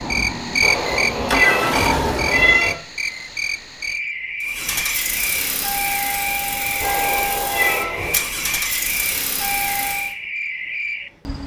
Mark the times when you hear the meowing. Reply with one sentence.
You can hear the meowing from 0.6 to 2.8 s and from 6.8 to 8.2 s.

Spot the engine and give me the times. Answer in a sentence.
You can hear the engine from 0.0 to 2.7 s and from 4.4 to 10.2 s.